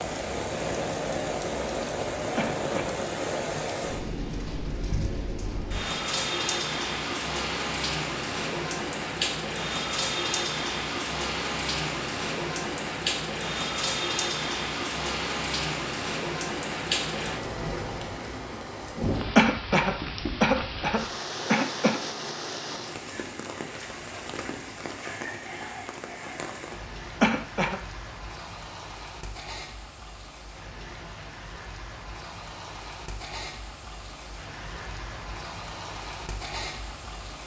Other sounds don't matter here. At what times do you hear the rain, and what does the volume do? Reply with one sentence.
The rain can be heard from 0.0 to 37.4 s, getting quieter.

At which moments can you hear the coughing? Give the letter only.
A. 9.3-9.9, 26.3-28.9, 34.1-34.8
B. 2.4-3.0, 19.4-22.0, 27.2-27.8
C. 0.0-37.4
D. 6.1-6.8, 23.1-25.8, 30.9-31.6
B.